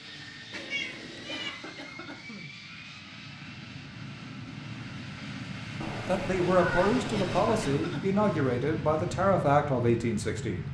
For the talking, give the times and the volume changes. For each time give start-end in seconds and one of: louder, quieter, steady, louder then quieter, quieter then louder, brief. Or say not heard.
6.0-10.6 steady.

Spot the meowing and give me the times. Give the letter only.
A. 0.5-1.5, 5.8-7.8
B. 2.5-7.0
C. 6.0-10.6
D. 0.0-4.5
A.